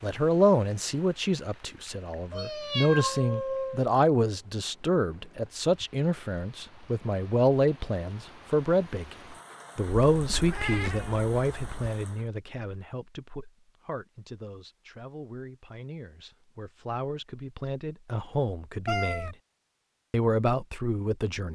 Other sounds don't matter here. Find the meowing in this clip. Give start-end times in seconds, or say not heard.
2.3-3.9, 9.9-11.9, 18.9-19.4.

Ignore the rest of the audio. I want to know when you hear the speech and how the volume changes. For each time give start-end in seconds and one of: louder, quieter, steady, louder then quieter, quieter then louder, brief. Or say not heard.
0.0-19.4 quieter
20.1-21.4 brief.